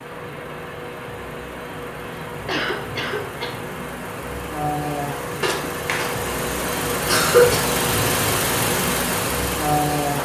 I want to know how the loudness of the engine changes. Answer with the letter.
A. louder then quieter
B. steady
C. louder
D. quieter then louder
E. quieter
C.